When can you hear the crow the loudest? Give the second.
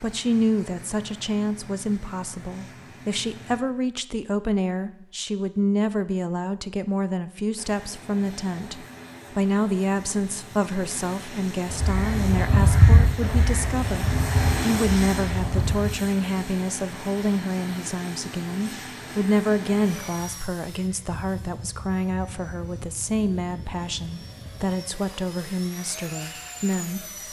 13 s.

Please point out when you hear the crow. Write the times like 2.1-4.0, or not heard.
11.7-15.9.